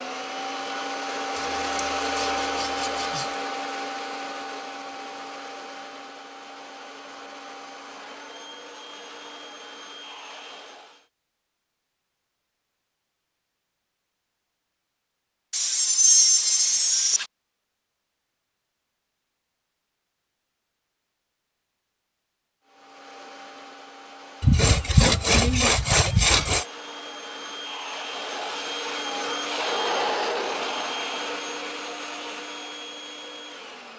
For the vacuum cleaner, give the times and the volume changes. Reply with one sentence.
The vacuum cleaner can be heard from 0.0 to 11.1 s, getting quieter; and from 22.6 to 33.9 s, getting louder then quieter.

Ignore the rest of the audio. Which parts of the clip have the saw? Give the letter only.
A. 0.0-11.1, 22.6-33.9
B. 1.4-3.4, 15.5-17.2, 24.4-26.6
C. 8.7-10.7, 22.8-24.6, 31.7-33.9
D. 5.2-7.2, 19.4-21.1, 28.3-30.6
B.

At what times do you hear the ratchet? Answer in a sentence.
The ratchet can't be heard in this clip.